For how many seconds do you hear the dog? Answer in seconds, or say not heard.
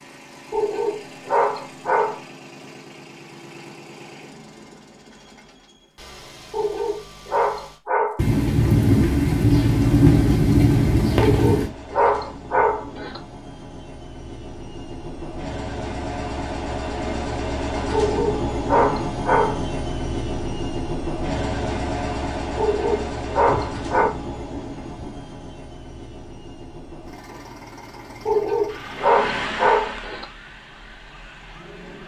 11 s.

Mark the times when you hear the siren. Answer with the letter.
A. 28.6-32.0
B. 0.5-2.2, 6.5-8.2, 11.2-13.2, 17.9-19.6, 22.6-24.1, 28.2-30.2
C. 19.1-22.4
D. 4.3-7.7
A.